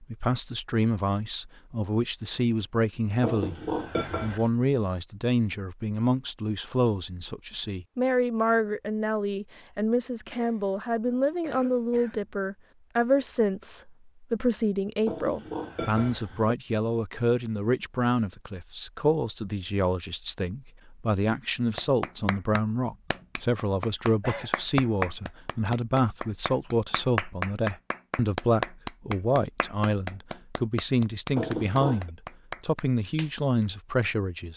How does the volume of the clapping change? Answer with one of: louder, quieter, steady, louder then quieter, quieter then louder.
louder then quieter.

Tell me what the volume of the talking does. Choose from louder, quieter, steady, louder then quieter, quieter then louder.
steady.